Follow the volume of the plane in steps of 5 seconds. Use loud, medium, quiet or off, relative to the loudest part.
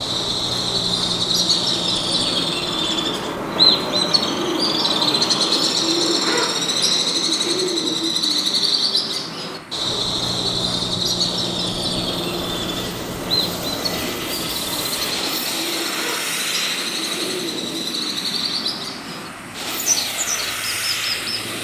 medium, medium, loud, loud, loud.